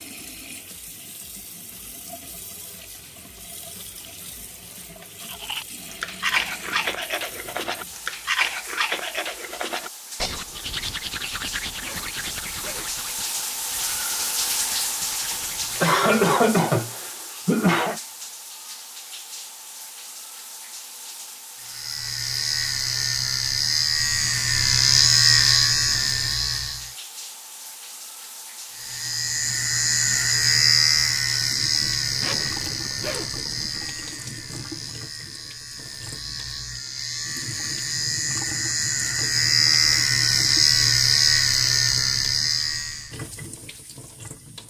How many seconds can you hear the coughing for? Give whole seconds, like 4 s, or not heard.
3 s.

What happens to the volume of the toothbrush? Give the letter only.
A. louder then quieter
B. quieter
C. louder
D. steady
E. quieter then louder
B.